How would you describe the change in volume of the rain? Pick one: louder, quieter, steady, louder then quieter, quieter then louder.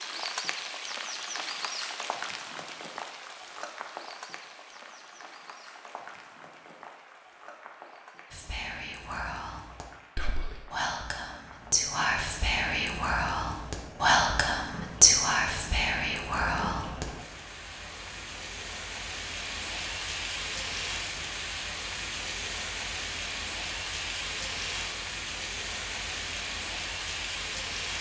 quieter then louder.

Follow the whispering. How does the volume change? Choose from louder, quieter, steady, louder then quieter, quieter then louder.
louder.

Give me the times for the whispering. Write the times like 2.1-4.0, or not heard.
8.3-17.1.